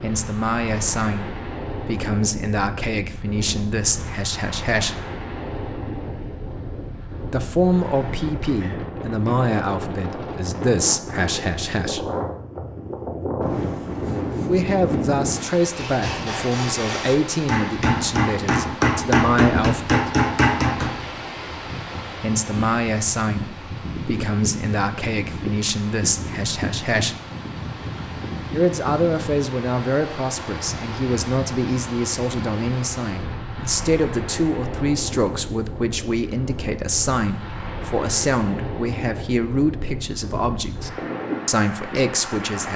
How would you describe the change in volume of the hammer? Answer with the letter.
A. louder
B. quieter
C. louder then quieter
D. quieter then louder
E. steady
A.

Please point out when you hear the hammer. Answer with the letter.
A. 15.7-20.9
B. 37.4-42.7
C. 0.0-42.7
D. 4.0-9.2
A.